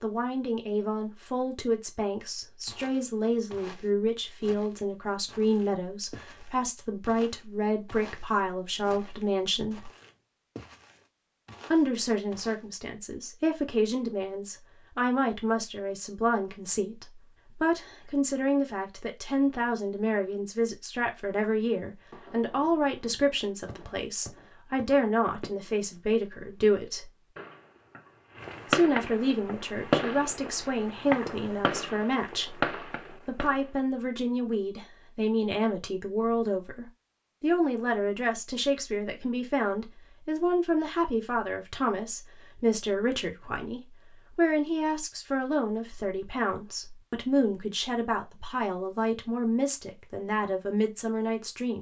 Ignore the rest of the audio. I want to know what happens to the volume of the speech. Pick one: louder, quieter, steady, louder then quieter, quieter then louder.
steady.